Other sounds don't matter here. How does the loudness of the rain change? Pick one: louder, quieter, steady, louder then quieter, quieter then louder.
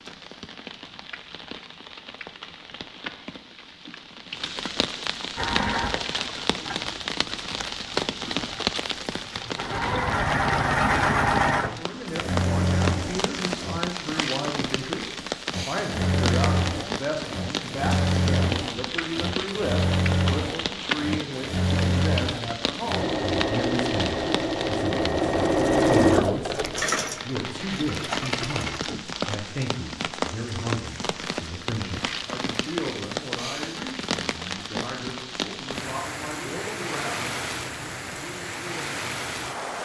steady.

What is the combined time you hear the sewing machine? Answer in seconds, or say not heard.
22 s.